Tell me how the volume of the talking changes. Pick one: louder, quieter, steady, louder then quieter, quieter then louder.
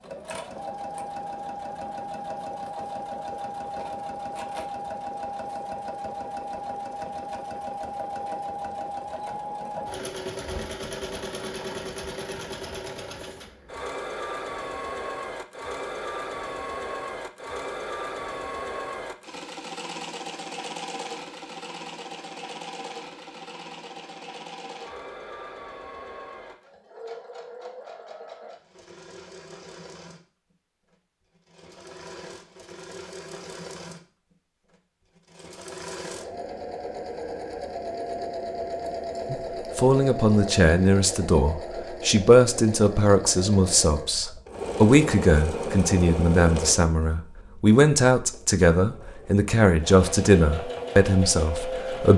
steady.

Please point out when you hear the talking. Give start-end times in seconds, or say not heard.
39.3-52.1.